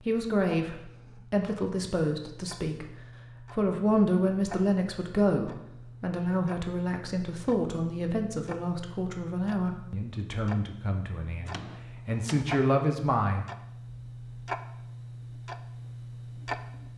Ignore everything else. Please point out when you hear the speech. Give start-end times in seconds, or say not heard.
0.0-13.4.